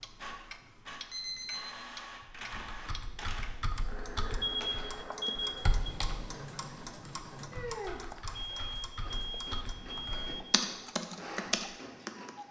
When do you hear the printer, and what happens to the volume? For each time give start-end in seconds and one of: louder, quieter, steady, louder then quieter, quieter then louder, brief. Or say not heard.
0.0-12.4 steady.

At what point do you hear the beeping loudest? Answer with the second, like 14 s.
5 s.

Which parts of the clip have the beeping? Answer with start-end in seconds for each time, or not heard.
1.1-1.7, 4.4-5.8, 8.3-10.4.